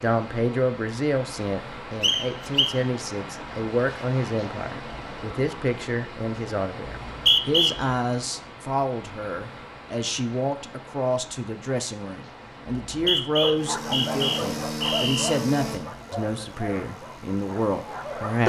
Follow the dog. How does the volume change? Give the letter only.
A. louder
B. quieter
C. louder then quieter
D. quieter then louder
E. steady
B.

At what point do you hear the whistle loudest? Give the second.
7 s.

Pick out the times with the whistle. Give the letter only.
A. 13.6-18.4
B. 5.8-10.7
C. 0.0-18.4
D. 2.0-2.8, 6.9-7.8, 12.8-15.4
D.